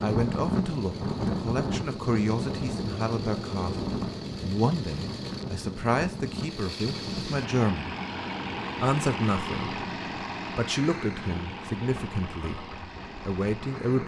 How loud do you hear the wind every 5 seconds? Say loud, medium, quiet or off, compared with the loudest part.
loud, medium, medium.